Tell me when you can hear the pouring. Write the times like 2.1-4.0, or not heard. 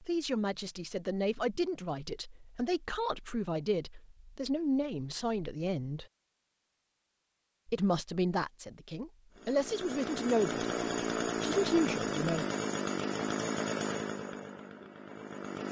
not heard.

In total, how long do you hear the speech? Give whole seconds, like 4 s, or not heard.
10 s.